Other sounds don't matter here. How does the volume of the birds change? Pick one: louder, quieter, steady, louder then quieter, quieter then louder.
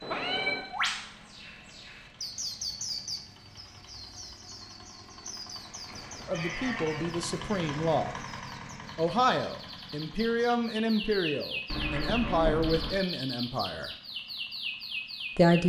quieter then louder.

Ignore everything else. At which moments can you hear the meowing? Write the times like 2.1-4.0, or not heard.
0.0-0.7, 5.8-7.2, 11.7-13.0.